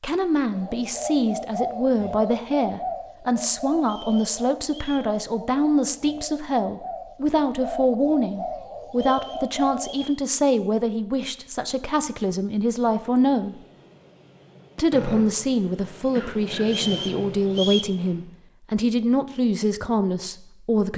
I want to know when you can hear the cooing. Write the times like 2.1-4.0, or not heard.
0.5-10.1.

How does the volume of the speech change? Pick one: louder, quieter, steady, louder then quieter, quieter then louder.
steady.